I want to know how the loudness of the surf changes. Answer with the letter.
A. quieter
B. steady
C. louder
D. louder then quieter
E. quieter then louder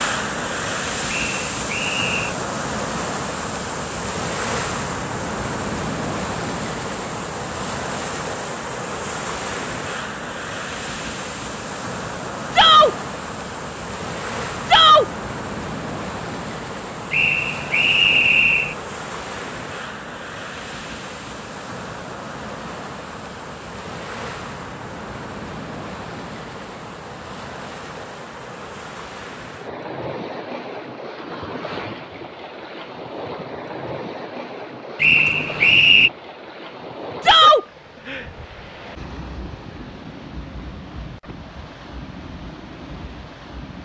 A.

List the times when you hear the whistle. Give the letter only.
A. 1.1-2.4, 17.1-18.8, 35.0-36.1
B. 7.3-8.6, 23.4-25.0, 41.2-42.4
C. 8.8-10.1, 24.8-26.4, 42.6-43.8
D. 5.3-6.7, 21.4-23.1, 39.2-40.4
A.